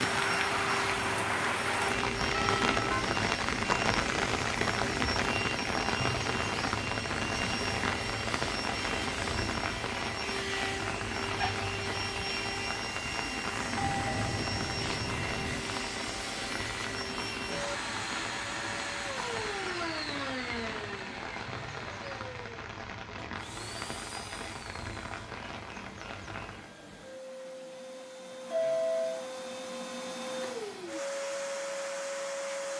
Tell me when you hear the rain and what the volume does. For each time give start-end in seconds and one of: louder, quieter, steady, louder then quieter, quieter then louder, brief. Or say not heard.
0.0-26.7 quieter.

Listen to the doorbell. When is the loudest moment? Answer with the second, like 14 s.
29 s.